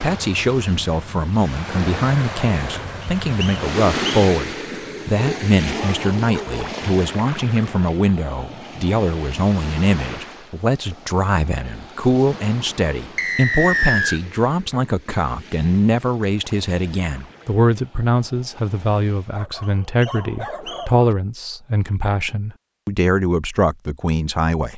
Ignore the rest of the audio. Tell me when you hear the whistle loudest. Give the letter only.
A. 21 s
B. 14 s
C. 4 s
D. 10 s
B.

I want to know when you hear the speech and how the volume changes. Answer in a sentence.
You can hear the speech from 0.0 to 24.7 s, at a steady volume.